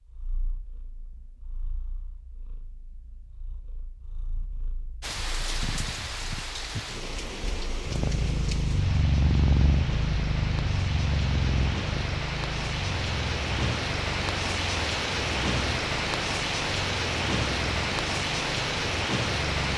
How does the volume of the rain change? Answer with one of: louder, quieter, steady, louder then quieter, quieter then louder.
louder.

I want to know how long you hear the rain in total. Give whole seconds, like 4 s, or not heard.
15 s.